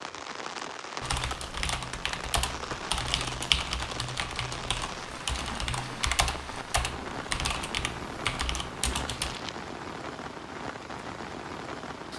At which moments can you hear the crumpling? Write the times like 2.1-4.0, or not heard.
9.1-9.7.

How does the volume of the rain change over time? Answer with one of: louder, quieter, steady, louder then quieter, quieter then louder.
steady.